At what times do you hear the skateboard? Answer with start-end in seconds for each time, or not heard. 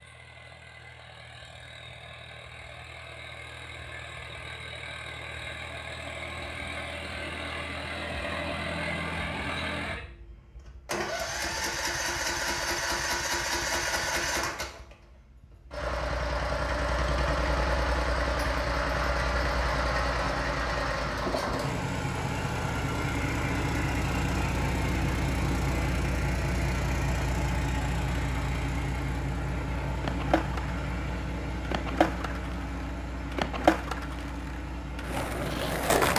30.0-36.1.